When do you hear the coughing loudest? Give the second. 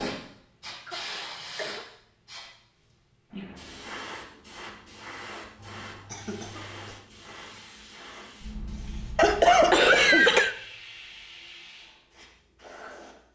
10 s.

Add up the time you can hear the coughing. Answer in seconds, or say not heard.
4 s.